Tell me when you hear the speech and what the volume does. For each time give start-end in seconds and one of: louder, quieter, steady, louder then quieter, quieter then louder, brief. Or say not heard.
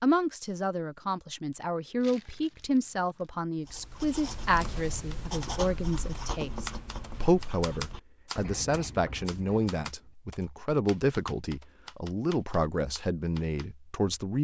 0.0-14.3 steady.